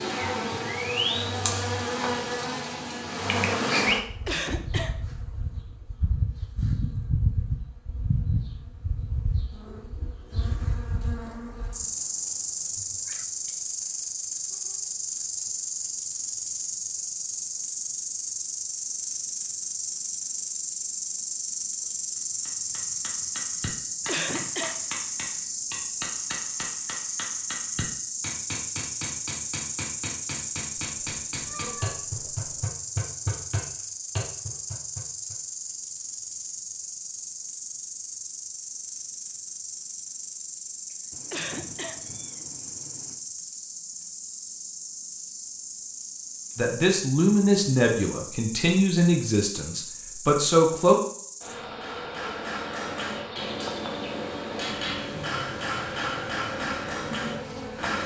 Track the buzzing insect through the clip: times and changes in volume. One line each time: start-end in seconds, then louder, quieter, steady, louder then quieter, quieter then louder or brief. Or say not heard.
0.0-58.0 quieter.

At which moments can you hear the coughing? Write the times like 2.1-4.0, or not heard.
4.2-5.0, 24.1-24.8, 41.3-42.0.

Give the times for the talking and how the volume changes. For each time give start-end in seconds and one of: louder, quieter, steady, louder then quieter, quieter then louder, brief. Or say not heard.
46.5-51.0 quieter then louder.